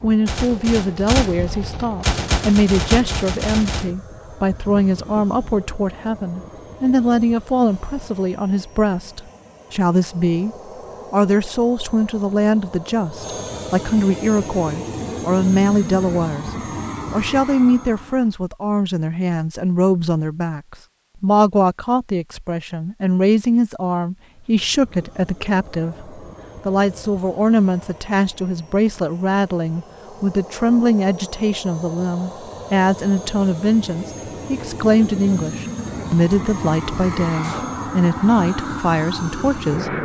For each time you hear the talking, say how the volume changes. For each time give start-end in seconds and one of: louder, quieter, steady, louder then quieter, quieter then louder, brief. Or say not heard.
0.0-16.4 steady
17.1-40.0 steady.